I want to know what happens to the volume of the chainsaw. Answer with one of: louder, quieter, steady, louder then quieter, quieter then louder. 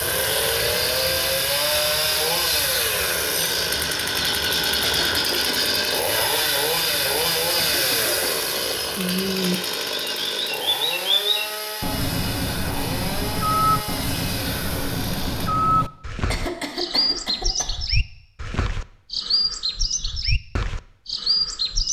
quieter.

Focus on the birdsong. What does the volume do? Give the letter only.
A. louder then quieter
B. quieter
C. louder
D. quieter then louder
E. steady
C.